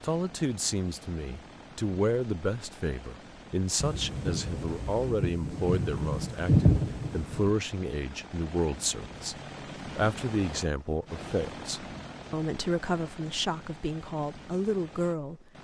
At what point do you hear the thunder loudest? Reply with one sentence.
The loudest moment of the thunder is at 7 seconds.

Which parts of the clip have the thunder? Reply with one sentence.
The thunder can be heard from 3.8 to 7.5 s.